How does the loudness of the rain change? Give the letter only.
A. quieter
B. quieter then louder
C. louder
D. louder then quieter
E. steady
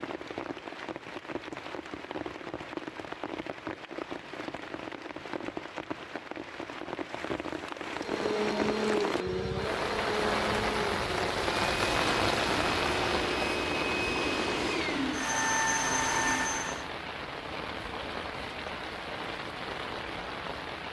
D.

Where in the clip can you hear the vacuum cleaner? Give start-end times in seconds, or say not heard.
7.9-16.9.